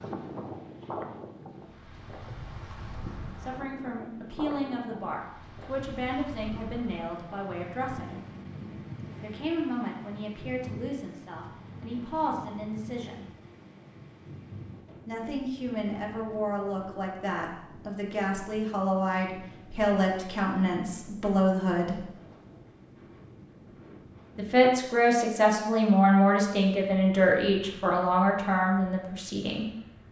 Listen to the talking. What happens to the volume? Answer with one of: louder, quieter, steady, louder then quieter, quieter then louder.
louder.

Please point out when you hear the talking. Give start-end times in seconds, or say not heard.
3.4-8.2, 9.2-13.2, 15.1-22.0, 24.4-29.6.